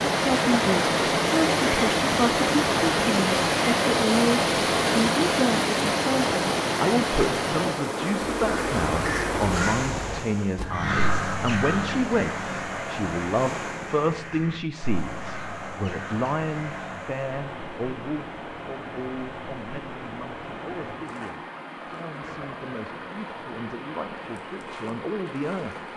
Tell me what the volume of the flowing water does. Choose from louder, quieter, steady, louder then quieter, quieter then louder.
quieter.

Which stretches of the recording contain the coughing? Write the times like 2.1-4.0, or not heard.
not heard.